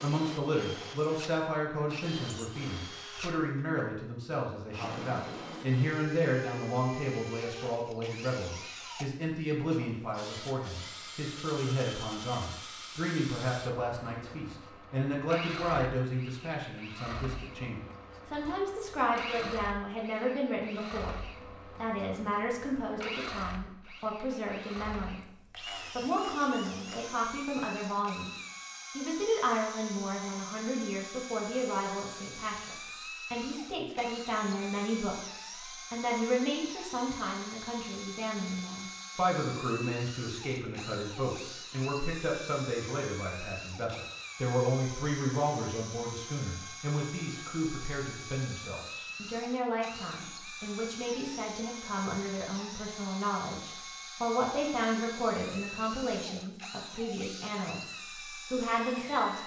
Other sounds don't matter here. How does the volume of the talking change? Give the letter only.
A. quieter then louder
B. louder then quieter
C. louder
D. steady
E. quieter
D.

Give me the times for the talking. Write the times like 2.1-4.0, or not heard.
0.0-21.1, 21.8-25.2, 25.9-59.4.